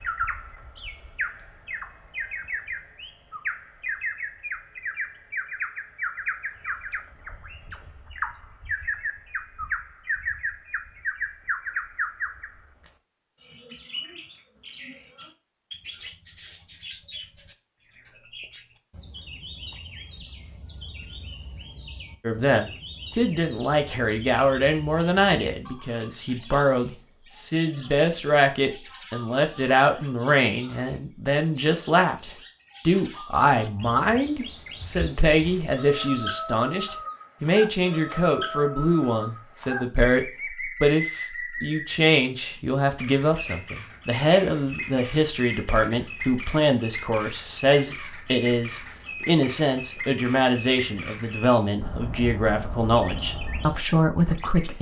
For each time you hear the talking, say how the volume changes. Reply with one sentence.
You can hear the talking from 22.2 to 54.7 s, at a steady volume.